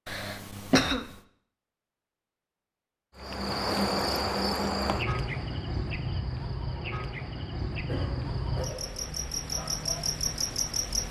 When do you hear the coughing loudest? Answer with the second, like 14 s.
1 s.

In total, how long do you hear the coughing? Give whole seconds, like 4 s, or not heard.
2 s.